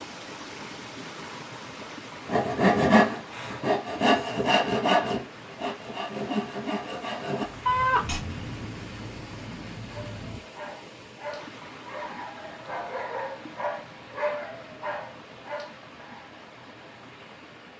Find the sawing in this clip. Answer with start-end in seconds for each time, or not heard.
2.2-8.2.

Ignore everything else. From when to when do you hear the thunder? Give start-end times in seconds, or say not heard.
7.5-10.4.